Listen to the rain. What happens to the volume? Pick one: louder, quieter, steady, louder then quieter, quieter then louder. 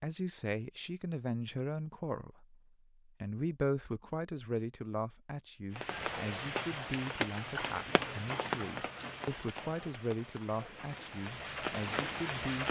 quieter then louder.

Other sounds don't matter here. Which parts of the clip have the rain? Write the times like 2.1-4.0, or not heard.
5.7-12.6.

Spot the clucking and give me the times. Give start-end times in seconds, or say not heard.
not heard.